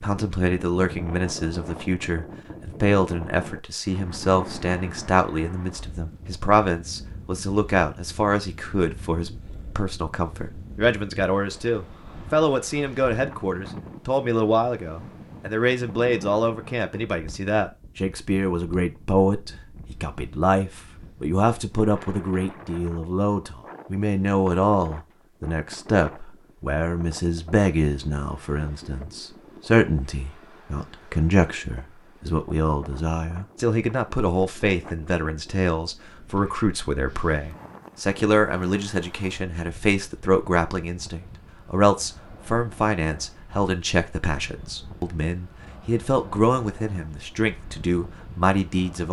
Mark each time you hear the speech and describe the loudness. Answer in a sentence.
You can hear the speech from 0.0 to 49.0 s, at a steady volume.